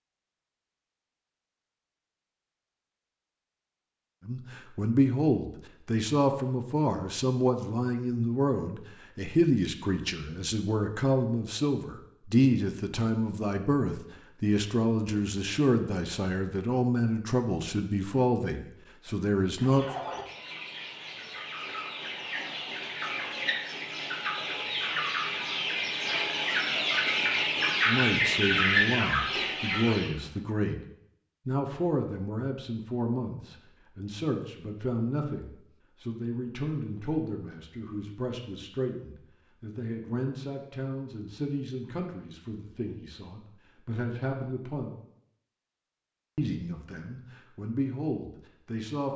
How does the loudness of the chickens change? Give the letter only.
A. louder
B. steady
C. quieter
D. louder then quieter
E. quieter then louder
A.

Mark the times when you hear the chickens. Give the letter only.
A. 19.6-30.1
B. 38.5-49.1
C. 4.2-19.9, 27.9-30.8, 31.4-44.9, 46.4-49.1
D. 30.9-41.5
A.